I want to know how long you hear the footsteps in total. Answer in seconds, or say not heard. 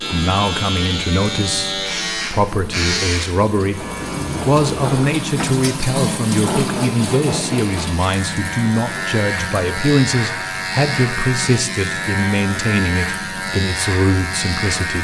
not heard.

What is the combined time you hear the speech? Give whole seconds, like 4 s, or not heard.
15 s.